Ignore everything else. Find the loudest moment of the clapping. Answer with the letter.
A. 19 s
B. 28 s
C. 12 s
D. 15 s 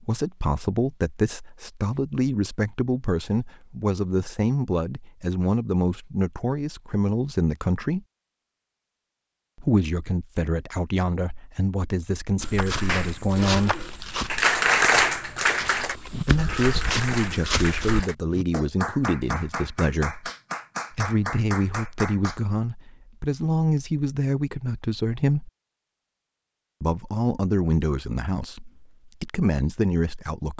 D.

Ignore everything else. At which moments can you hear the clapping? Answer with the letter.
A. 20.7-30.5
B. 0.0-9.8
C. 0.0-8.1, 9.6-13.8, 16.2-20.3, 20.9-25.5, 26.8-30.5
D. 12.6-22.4
D.